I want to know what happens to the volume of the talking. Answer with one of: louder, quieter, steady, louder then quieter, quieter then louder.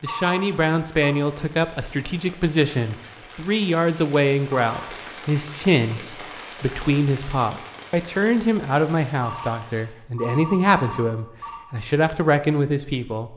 steady.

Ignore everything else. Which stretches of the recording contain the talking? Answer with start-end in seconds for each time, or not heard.
0.0-13.3.